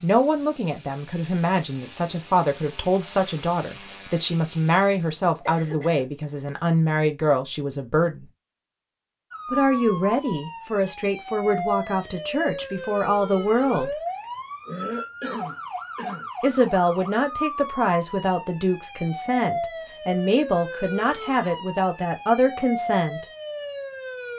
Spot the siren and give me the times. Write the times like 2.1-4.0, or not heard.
9.3-24.3.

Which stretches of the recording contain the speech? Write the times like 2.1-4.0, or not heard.
0.0-8.3, 9.5-13.9, 16.4-23.2.